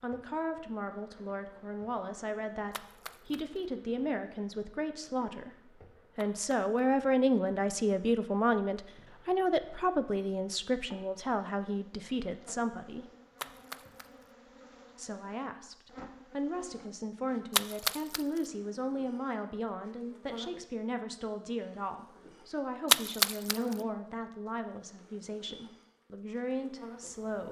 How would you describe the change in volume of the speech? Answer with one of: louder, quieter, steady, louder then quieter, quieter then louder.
louder then quieter.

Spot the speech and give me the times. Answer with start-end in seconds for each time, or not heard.
0.0-5.5, 6.2-13.1, 14.9-27.4.